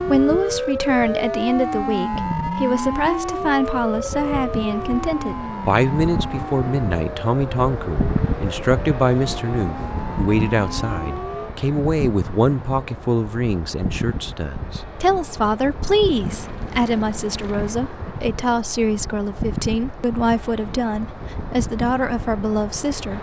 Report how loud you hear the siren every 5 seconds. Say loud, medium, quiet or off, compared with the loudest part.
loud, medium, medium, off, off.